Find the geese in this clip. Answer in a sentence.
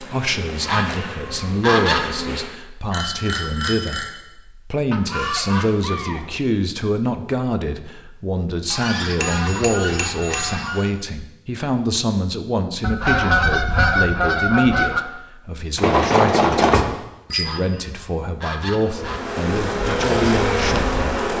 The geese can be heard from 0.7 to 2.1 s, from 4.9 to 6.3 s, from 8.7 to 10.9 s, from 12.8 to 15.0 s and from 17.4 to 19.2 s.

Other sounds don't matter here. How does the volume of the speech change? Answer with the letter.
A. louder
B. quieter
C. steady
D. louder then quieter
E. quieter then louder
C.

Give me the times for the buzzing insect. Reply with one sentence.
The buzzing insect can be heard from 0.0 to 2.5 s and from 18.8 to 21.3 s.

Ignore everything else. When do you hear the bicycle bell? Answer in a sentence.
The bicycle bell can be heard from 2.9 to 4.1 s, from 9.2 to 10.7 s and from 15.8 to 17.6 s.